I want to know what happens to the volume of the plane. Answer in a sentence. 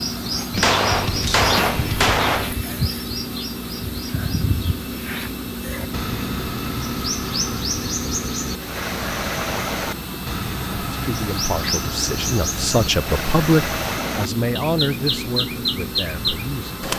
The loudness of the plane stays about the same.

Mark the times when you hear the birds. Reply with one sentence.
The birds can be heard from 0.0 to 16.9 s.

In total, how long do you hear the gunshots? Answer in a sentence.
You can hear the gunshots for 2 seconds altogether.